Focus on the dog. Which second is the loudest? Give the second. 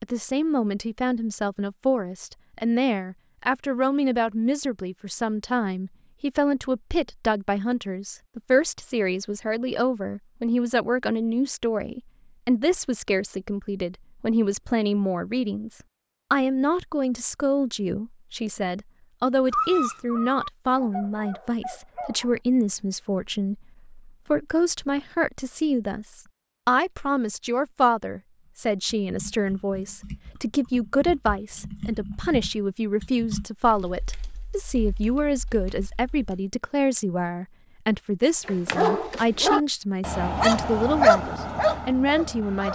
41 s.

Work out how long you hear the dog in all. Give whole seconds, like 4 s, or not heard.
7 s.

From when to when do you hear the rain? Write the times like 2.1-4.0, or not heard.
not heard.